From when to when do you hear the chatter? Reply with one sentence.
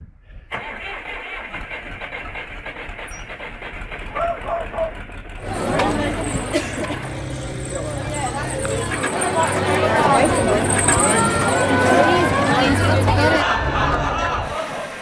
You can hear the chatter from 5.4 to 14.9 s.